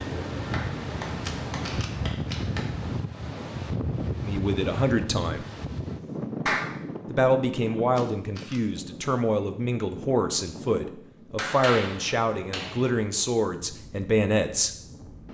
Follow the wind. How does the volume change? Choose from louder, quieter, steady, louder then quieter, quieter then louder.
quieter.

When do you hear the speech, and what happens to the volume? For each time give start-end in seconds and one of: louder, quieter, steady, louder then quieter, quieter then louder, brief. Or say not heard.
4.2-5.5 brief
7.1-14.7 steady.